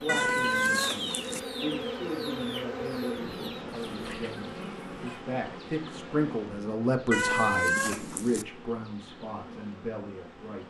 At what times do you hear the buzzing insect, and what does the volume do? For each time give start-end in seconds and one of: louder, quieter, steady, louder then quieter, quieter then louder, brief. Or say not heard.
0.0-10.6 quieter.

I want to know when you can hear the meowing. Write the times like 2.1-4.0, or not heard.
0.1-1.4, 7.1-8.4.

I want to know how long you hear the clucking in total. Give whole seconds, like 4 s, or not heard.
5 s.